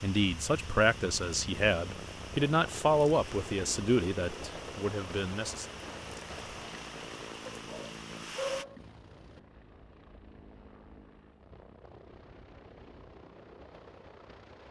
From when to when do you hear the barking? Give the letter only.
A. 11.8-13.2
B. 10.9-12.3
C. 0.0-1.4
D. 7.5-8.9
D.